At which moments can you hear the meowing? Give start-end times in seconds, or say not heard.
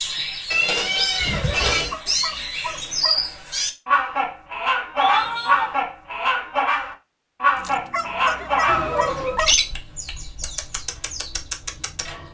0.5-1.9, 5.0-5.8, 8.7-9.4.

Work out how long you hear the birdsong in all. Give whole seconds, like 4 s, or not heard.
12 s.